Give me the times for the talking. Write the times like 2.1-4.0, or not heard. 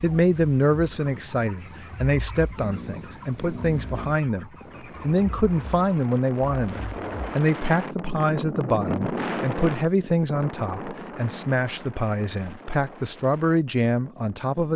0.0-14.7.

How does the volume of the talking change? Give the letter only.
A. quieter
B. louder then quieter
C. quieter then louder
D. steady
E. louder
D.